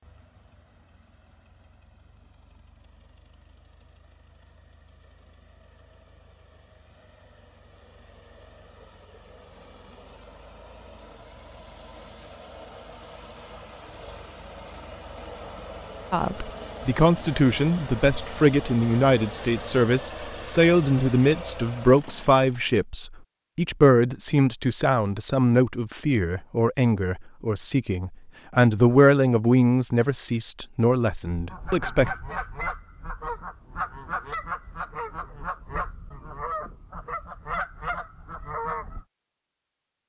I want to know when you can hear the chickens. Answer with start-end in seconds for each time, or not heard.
31.3-39.0.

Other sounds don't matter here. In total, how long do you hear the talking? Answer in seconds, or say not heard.
16 s.